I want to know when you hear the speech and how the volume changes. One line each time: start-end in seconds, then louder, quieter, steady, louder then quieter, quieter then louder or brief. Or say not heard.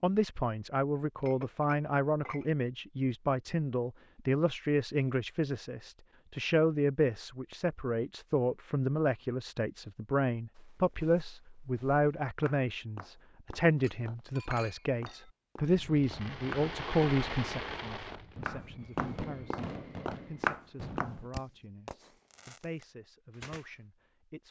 0.0-24.4 quieter.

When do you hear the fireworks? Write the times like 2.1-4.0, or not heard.
15.6-23.7.